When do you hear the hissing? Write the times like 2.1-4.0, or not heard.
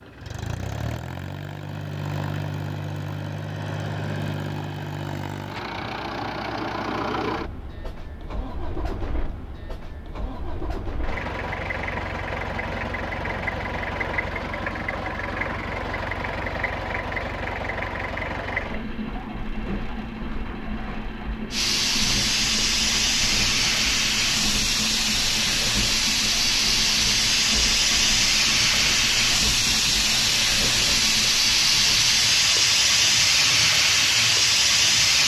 21.5-35.2.